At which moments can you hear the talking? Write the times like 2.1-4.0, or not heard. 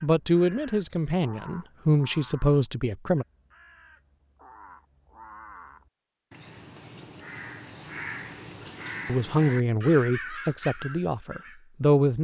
0.0-3.2, 9.1-12.1.